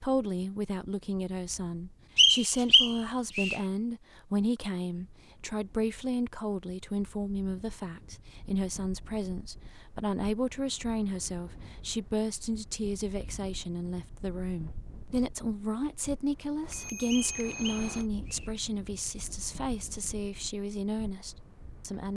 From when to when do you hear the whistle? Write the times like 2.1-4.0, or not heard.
2.1-3.6, 17.1-18.5.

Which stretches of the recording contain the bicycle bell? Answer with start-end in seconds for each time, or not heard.
16.6-18.1.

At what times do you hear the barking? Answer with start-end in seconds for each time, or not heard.
not heard.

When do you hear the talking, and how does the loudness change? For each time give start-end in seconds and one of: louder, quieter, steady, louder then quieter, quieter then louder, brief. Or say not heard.
0.0-22.1 steady.